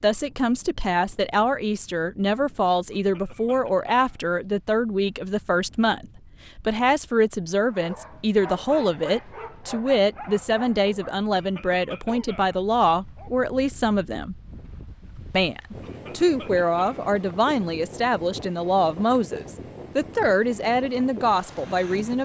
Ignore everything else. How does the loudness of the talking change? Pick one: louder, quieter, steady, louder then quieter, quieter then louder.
steady.